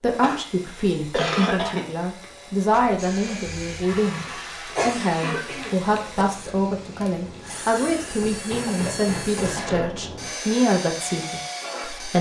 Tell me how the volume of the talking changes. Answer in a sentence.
The loudness of the talking stays about the same.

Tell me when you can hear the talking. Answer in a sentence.
You can hear the talking from 0.0 to 4.2 s and from 4.8 to 12.1 s.